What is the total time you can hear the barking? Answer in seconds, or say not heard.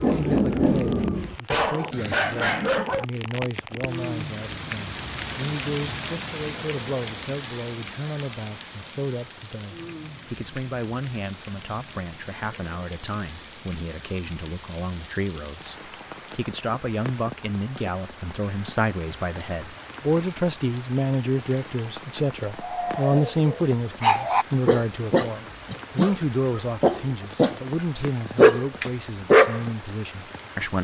10 s.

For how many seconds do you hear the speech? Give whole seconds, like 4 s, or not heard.
31 s.